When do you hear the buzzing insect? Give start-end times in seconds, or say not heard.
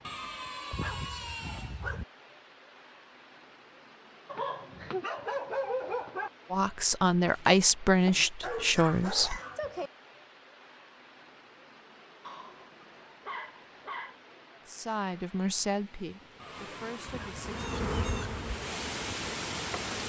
17.4-20.0.